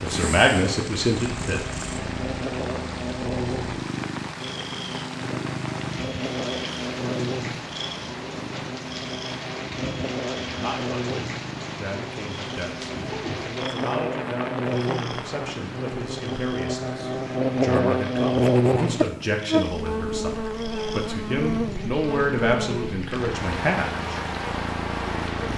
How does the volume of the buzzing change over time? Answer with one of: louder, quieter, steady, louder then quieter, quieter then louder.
louder then quieter.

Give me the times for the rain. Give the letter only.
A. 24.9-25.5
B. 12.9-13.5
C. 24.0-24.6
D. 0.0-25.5
D.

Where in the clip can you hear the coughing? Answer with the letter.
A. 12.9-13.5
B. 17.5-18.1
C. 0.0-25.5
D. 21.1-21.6
A.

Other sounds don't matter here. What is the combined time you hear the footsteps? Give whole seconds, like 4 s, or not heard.
not heard.